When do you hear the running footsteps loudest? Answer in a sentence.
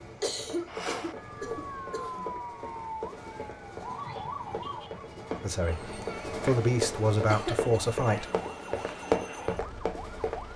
The loudest moment of the running footsteps is at 9 seconds.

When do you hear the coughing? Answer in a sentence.
You can hear the coughing from 0.2 to 2.2 s and from 7.3 to 7.8 s.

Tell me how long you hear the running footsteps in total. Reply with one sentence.
The running footsteps can be heard for 10 seconds in total.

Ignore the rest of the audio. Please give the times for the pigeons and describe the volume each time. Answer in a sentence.
The pigeons can't be heard in this clip.